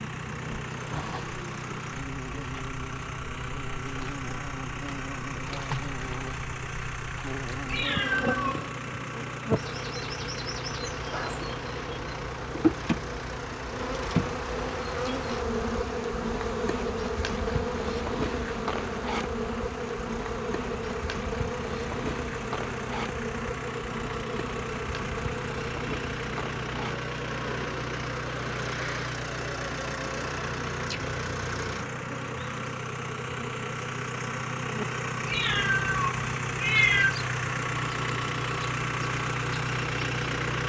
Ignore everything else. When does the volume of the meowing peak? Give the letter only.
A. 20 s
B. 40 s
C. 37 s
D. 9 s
C.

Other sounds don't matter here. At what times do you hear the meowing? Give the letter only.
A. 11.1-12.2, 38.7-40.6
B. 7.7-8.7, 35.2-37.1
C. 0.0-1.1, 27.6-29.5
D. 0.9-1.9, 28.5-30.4
B.